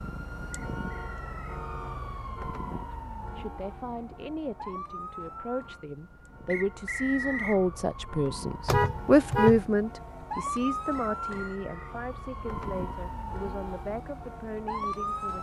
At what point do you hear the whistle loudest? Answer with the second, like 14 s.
7 s.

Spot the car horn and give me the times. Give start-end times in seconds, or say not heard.
8.7-9.7.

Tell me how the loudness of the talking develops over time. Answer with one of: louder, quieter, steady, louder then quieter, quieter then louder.
louder then quieter.